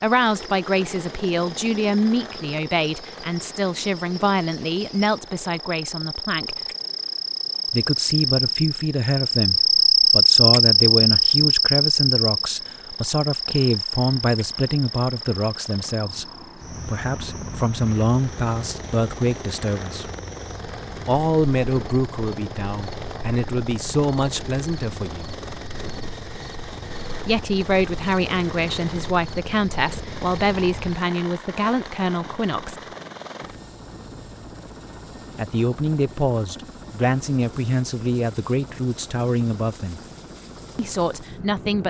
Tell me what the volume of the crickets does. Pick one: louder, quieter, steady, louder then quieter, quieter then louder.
louder then quieter.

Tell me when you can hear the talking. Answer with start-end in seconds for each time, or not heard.
0.0-6.5, 7.7-20.1, 21.1-25.3, 27.2-32.8, 35.4-40.0, 40.8-41.8.